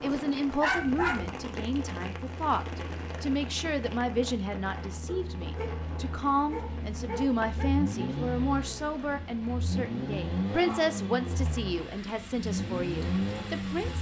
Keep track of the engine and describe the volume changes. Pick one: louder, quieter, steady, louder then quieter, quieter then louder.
louder.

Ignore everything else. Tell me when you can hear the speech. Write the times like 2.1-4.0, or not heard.
0.0-13.9.